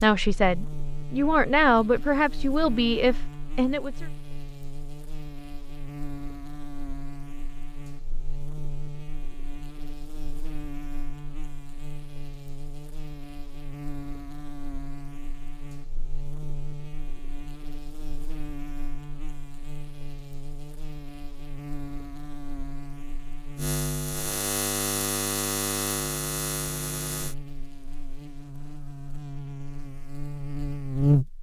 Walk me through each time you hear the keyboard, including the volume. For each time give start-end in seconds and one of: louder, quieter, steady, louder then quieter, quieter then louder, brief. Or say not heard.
not heard.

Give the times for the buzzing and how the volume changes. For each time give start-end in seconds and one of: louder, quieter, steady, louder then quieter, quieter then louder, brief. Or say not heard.
0.0-31.3 louder.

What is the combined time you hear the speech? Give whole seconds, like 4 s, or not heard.
4 s.